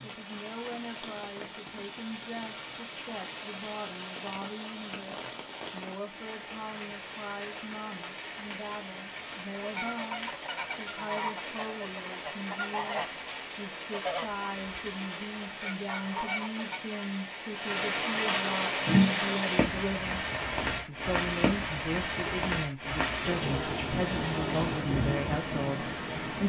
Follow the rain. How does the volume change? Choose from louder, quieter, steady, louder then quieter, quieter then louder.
louder.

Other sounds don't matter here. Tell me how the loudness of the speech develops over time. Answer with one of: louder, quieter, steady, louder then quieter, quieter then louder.
louder.